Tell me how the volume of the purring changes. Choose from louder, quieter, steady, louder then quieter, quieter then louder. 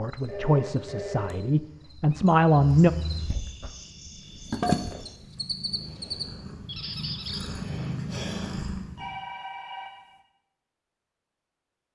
louder.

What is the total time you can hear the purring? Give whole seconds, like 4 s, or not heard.
6 s.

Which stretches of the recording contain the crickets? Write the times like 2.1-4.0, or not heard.
0.0-6.2.